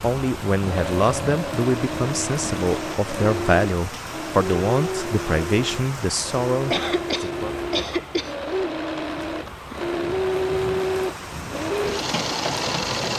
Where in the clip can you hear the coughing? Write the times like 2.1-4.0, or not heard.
6.7-8.3.